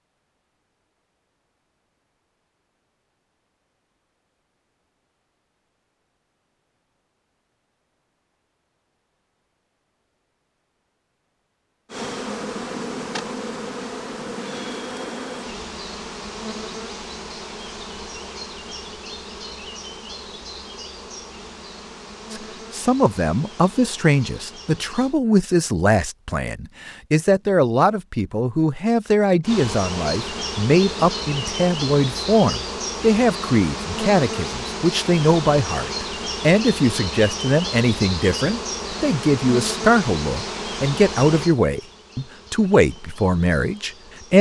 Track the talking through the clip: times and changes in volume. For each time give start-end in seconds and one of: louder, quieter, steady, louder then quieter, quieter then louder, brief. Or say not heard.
22.3-44.3 steady.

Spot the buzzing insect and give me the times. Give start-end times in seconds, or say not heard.
11.9-25.1, 29.4-44.3.